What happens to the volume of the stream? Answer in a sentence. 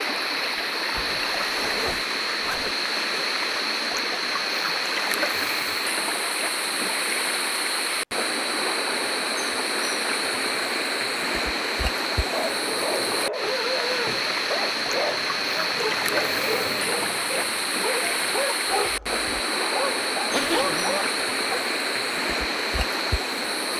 The volume of the stream stays about the same.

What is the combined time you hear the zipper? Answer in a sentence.
The zipper can be heard for 3 seconds in total.